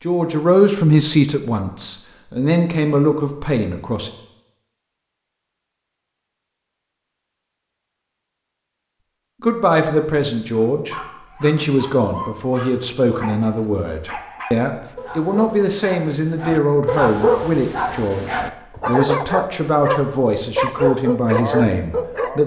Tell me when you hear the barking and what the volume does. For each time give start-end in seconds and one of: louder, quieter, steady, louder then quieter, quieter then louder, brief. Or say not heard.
10.6-22.4 louder.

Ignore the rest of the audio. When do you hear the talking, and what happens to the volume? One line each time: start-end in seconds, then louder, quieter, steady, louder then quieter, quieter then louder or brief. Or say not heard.
0.0-4.1 quieter then louder
9.4-22.4 steady.